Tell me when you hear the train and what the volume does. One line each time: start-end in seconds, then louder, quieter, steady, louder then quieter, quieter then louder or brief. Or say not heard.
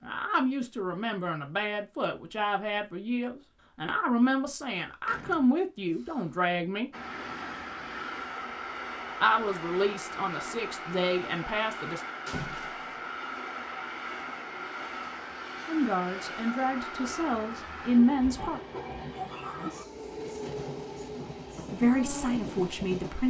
6.9-23.2 steady.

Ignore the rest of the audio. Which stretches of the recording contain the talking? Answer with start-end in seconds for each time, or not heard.
0.0-6.9, 9.2-12.0, 15.7-18.6, 21.7-23.2.